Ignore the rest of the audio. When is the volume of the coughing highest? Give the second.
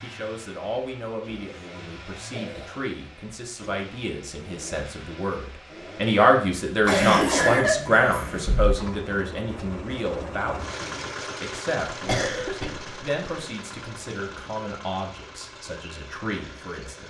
7 s.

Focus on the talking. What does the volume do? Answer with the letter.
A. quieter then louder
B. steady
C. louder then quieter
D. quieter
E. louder
C.